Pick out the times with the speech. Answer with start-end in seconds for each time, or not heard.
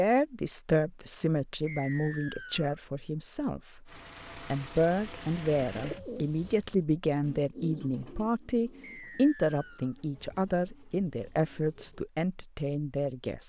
0.0-3.9, 4.5-13.4.